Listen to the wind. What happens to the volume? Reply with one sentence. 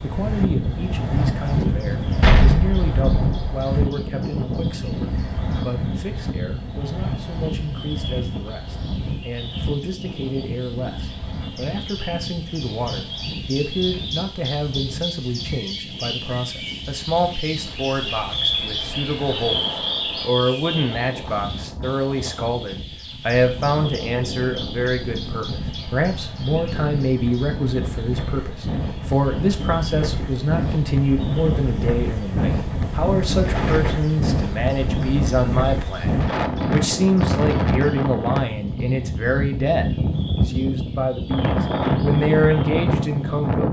The volume of the wind goes down, then up.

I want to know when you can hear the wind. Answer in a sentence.
The wind can be heard from 0.0 to 43.6 s.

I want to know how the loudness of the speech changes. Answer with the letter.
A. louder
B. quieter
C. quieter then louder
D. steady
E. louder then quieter
A.